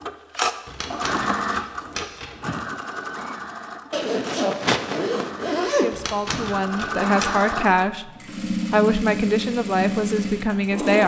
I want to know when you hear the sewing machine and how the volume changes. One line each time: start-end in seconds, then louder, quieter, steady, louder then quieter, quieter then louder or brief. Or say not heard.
0.0-11.0 quieter then louder.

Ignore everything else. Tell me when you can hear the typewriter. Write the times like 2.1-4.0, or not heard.
0.7-2.4, 5.9-7.3.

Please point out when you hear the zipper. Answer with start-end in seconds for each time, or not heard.
3.9-5.9.